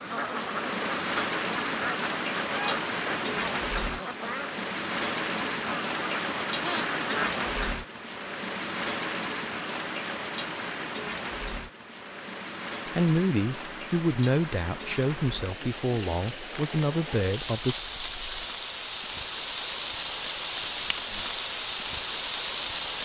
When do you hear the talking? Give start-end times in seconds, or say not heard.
12.8-17.8.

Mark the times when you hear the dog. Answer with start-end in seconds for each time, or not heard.
not heard.